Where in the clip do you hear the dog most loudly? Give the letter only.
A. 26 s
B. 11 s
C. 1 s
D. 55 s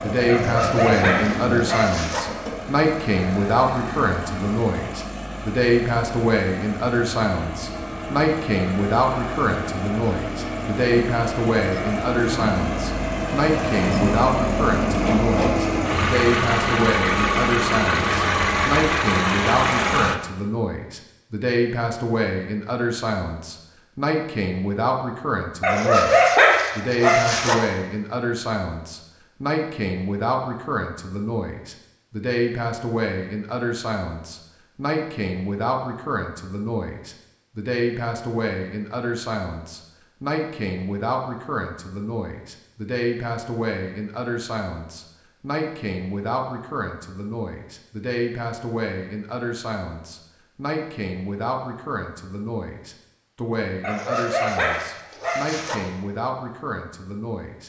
A.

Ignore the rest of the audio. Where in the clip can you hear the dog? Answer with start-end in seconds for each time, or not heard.
0.2-2.2, 25.6-27.6, 53.8-55.8.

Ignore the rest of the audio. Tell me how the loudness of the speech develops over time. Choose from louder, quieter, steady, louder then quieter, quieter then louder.
quieter.